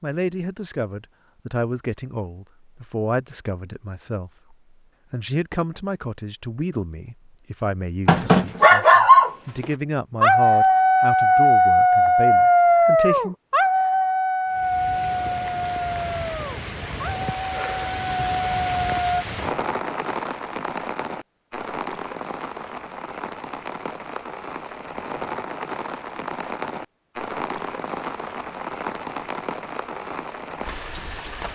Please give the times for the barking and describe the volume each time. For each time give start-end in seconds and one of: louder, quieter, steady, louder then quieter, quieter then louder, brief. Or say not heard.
8.1-19.2 quieter.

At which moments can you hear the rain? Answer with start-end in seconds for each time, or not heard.
14.4-31.4.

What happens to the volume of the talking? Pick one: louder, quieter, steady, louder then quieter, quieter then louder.
steady.